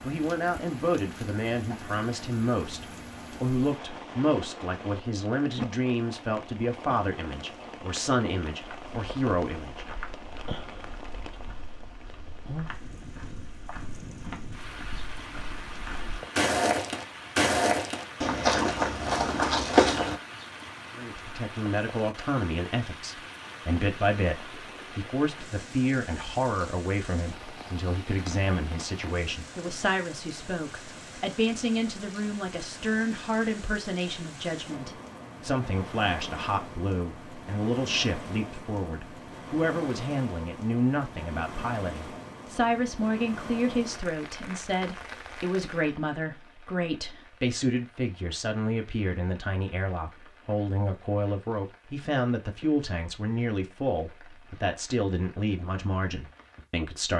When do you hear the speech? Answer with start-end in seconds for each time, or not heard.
0.0-9.8, 20.9-57.1.